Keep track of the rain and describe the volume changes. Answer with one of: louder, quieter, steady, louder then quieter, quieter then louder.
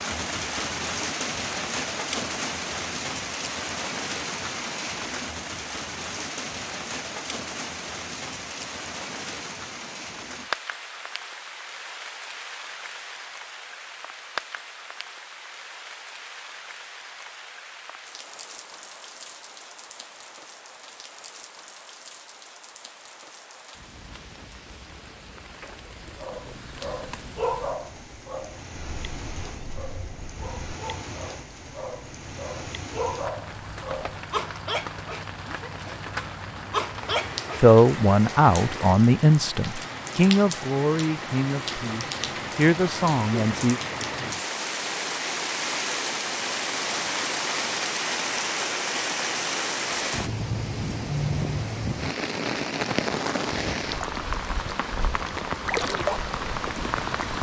quieter then louder.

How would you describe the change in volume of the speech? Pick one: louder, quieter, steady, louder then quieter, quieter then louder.
quieter then louder.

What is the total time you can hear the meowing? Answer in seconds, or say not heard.
2 s.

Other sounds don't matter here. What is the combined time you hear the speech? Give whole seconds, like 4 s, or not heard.
6 s.